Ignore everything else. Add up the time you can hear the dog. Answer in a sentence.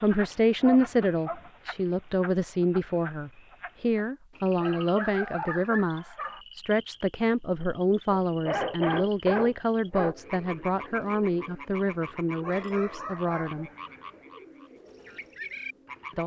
You can hear the dog for 6 seconds altogether.